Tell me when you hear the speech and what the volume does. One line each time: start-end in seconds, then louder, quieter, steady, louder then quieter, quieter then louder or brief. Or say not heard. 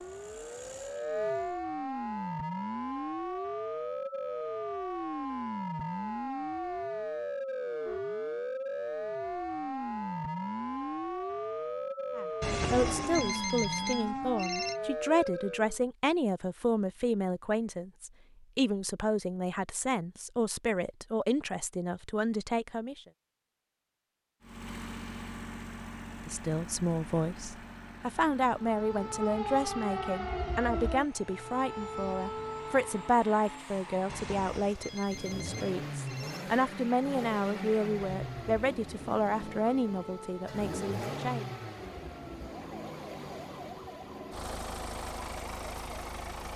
12.2-23.0 steady
26.2-41.5 steady.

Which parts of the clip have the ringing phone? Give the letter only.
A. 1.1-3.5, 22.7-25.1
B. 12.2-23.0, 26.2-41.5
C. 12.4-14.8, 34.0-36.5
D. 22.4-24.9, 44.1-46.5
C.